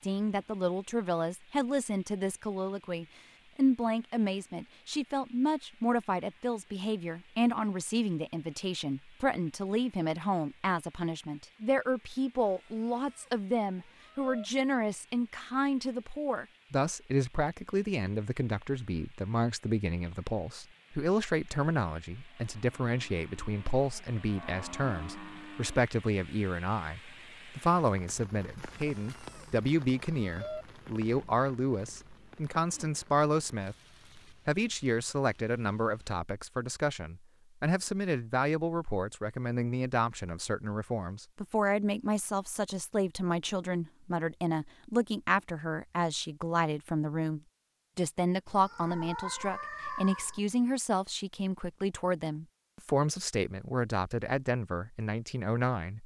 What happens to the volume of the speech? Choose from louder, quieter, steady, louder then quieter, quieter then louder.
steady.